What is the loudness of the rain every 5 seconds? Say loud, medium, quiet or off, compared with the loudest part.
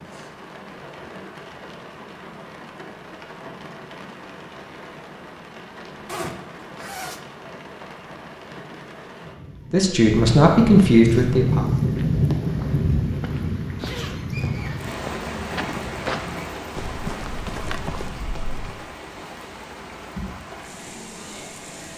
quiet, quiet, loud, medium, quiet.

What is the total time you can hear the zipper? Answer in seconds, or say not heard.
2 s.